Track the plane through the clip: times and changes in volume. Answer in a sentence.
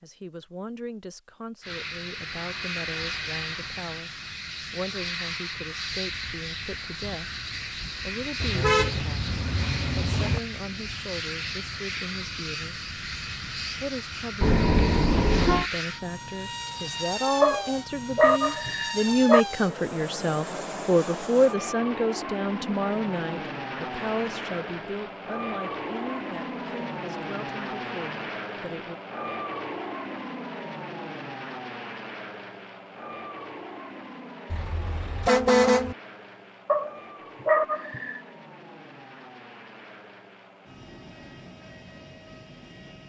You can hear the plane from 1.6 to 43.0 s, getting quieter.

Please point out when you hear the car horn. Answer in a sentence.
You can hear the car horn from 8.4 to 10.4 s, from 14.4 to 15.7 s and from 34.5 to 36.0 s.